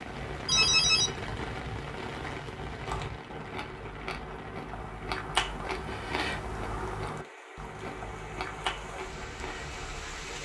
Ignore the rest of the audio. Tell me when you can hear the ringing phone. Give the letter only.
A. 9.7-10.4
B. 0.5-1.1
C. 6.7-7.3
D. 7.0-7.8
B.